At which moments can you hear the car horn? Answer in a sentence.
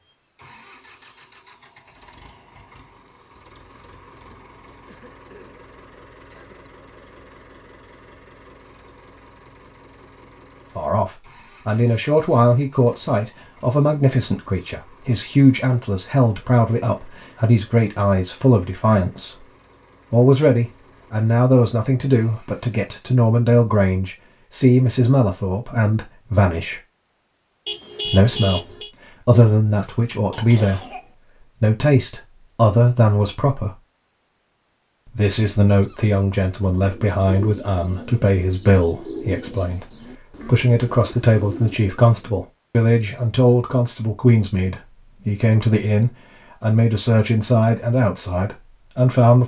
You can hear the car horn from 27.6 to 28.9 s.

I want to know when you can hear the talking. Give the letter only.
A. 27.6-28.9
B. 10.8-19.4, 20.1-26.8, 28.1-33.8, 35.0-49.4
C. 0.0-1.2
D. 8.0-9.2
B.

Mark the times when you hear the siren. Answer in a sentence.
You can't hear the siren here.